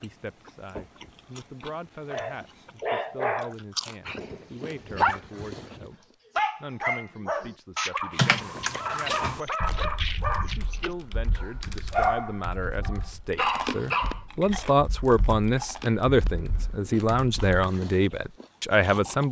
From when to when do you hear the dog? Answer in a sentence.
The dog can be heard from 2.1 to 14.2 s.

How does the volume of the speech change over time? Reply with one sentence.
The loudness of the speech goes up.